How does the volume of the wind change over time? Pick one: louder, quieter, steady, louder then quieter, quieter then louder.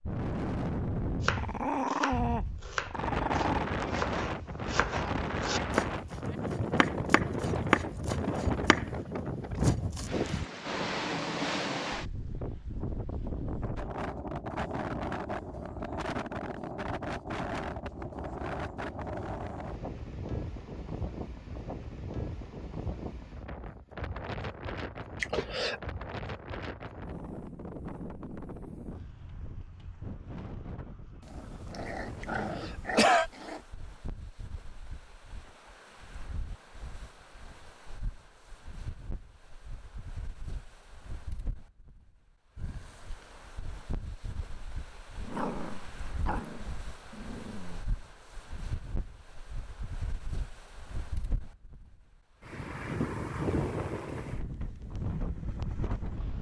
quieter then louder.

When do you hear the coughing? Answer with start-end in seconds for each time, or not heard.
25.2-25.8, 32.2-33.3.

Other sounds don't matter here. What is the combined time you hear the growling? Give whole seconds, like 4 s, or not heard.
7 s.